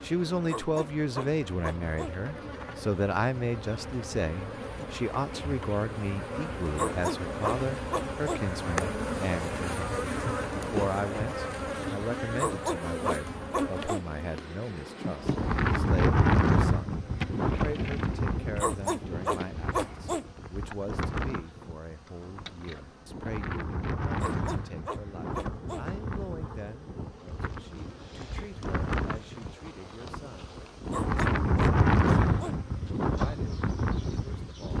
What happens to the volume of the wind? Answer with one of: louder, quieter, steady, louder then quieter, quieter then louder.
quieter then louder.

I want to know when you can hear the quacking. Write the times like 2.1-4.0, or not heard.
not heard.